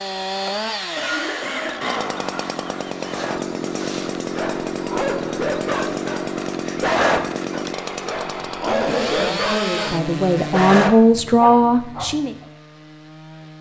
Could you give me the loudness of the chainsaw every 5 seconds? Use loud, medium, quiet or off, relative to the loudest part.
loud, loud, medium.